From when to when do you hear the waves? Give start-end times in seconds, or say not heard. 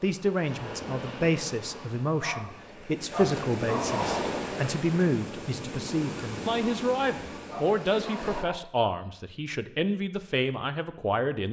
0.0-8.4.